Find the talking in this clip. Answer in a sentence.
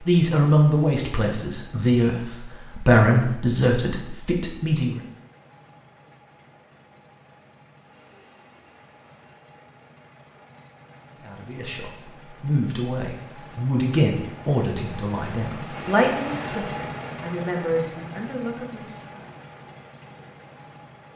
You can hear the talking from 0.1 to 5.0 s and from 11.2 to 19.2 s.